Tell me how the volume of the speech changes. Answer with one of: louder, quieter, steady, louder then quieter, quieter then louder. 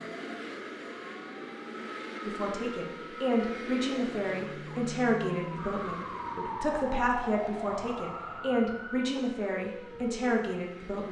steady.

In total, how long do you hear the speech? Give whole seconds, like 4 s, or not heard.
9 s.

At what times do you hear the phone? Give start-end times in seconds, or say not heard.
not heard.